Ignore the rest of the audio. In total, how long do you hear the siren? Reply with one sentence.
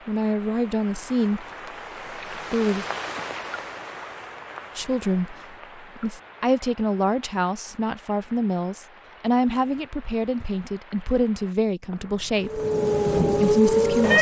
You can hear the siren for 2 seconds altogether.